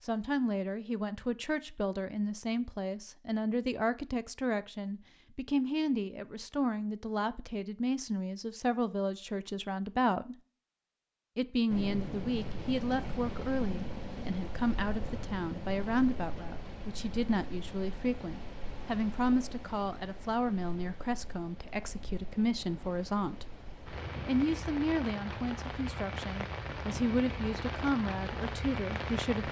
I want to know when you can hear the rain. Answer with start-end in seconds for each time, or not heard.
11.7-29.4.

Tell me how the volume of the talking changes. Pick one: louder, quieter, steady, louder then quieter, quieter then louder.
steady.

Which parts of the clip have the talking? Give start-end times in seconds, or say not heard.
0.0-10.3, 11.3-23.4, 24.2-29.4.